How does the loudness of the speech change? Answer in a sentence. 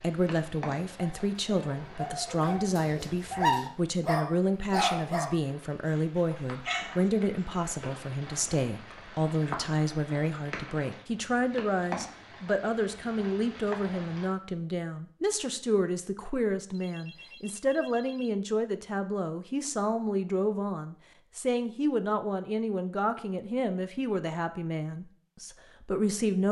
The loudness of the speech stays about the same.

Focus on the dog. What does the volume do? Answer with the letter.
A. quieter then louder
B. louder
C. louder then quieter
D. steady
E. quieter
C.